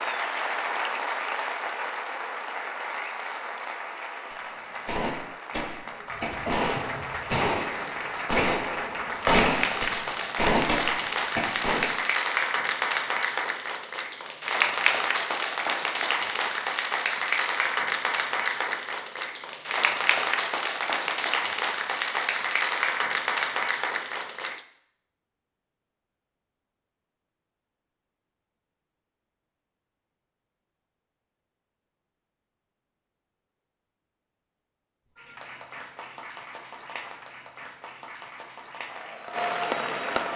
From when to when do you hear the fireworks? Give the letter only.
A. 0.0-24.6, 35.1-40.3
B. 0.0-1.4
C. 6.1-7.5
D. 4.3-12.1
D.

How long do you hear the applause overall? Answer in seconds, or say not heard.
30 s.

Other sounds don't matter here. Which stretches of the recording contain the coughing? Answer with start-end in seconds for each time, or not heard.
6.1-7.5.